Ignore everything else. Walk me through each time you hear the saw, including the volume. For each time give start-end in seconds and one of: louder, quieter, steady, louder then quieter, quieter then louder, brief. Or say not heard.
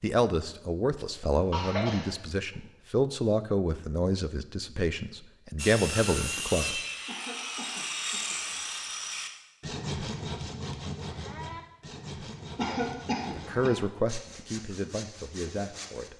5.5-16.1 quieter.